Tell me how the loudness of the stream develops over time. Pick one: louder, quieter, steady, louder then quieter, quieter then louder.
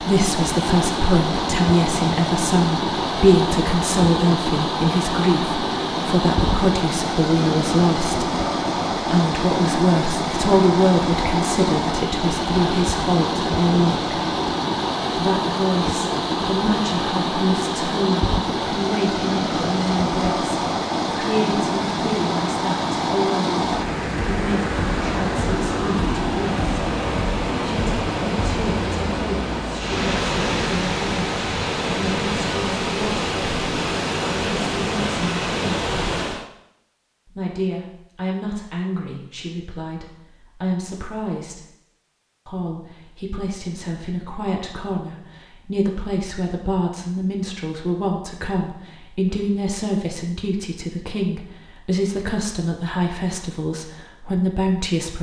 steady.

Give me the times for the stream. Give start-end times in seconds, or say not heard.
0.0-36.5.